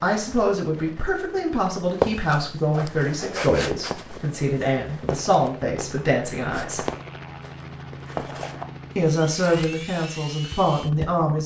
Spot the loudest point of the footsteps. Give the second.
2 s.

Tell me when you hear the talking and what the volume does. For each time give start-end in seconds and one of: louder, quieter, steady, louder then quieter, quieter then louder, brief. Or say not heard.
0.0-6.8 steady
8.9-11.4 brief.